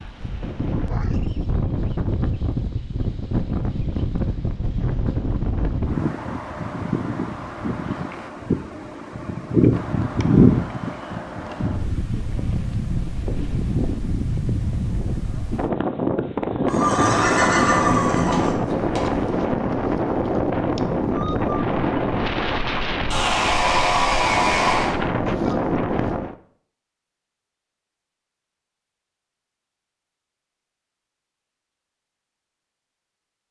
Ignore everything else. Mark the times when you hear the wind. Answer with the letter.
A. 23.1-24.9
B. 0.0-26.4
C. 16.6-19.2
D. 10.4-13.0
B.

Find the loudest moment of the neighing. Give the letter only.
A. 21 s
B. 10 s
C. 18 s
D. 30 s
C.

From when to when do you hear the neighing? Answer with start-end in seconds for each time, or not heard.
16.6-19.2.